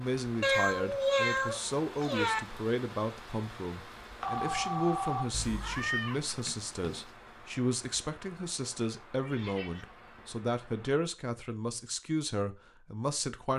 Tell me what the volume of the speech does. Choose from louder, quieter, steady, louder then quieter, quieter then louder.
steady.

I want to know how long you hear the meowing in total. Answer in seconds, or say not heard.
5 s.